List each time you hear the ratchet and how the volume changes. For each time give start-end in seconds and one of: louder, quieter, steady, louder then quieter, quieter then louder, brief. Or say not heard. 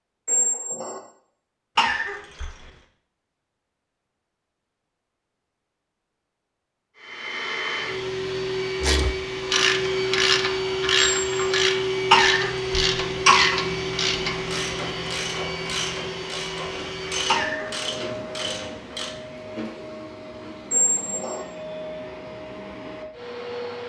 8.8-19.1 quieter.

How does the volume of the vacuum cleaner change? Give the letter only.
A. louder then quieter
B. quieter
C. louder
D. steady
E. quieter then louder
B.